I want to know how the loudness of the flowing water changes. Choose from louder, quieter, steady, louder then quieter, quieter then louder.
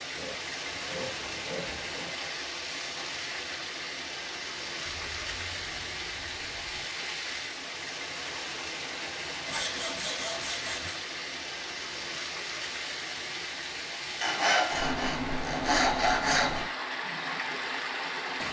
steady.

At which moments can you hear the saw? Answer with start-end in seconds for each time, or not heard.
0.1-2.1, 4.8-6.8, 9.4-11.0, 14.2-16.6.